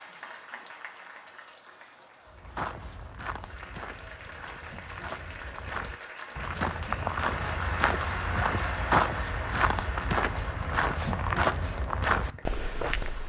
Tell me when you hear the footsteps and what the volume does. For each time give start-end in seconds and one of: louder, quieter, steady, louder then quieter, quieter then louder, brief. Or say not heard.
2.2-13.2 louder.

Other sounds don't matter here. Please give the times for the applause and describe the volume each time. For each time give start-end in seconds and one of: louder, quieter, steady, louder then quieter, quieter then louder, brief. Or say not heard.
0.0-13.2 louder then quieter.